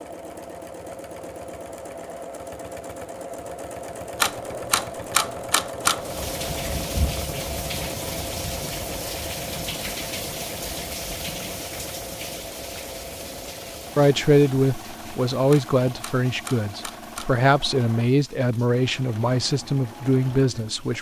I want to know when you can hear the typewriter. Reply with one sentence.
You can hear the typewriter from 4.2 to 6.0 s and from 15.5 to 17.4 s.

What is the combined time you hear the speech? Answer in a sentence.
The speech can be heard for 7 seconds in total.